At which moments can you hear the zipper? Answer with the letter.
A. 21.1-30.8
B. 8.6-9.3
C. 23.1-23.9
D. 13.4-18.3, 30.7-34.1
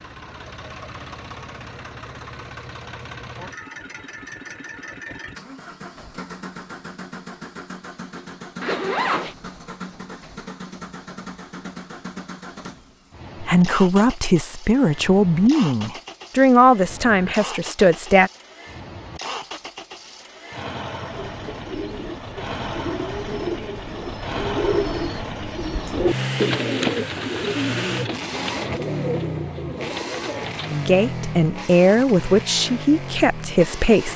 B.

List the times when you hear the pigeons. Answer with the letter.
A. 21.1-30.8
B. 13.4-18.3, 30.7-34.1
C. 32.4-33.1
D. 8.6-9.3
A.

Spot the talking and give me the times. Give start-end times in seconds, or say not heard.
13.4-18.3, 30.7-34.1.